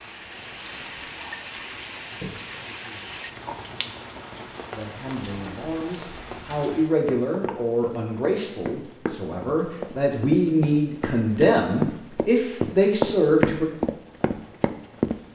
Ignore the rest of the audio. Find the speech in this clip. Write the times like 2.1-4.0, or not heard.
4.7-13.7.